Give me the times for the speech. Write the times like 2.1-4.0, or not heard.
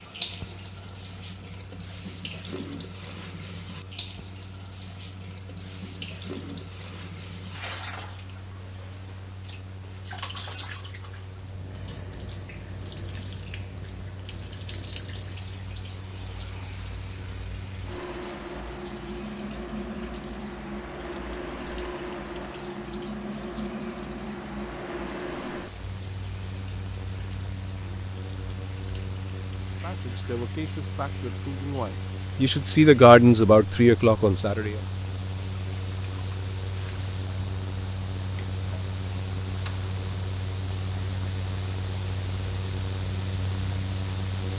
29.7-34.8.